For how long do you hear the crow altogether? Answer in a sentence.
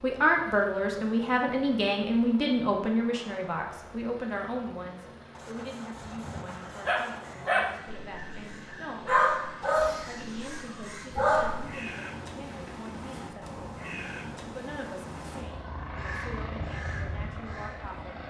The crow can be heard for 12 seconds in total.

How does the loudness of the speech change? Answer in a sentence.
The loudness of the speech goes down.